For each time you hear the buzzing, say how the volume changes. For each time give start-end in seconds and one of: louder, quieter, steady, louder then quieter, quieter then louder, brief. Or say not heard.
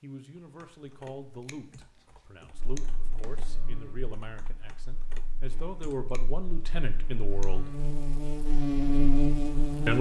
2.5-9.9 quieter then louder.